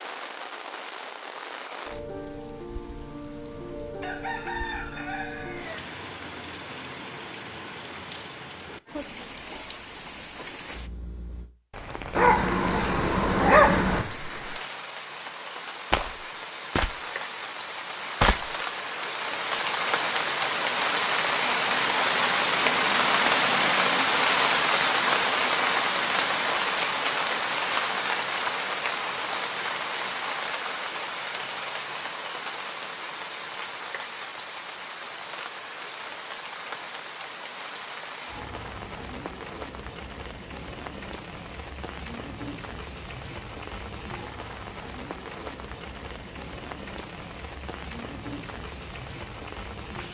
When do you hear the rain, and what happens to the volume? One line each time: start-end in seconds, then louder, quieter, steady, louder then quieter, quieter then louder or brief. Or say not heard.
0.0-50.0 louder then quieter.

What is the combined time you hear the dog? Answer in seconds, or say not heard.
2 s.